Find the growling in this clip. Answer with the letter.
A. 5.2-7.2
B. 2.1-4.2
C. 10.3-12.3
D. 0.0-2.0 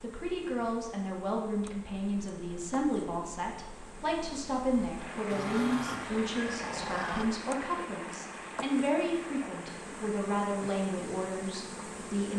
A.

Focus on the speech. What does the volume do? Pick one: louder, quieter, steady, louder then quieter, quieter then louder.
steady.